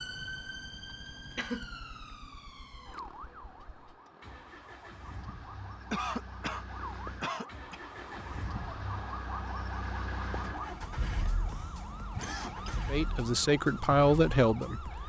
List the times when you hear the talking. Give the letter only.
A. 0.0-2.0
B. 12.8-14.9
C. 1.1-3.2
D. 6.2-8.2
B.